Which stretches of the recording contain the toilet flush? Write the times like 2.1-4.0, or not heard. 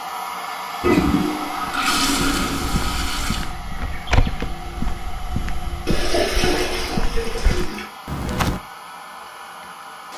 0.8-3.5, 5.8-7.8.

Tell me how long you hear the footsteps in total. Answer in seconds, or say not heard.
7 s.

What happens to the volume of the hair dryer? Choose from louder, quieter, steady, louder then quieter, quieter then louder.
quieter.